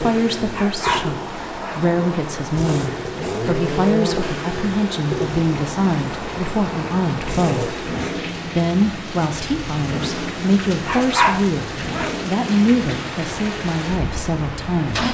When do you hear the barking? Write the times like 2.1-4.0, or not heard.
0.5-1.9, 10.7-12.3.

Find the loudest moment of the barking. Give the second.
11 s.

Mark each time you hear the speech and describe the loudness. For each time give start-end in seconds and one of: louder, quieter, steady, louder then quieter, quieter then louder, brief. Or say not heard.
0.0-15.1 steady.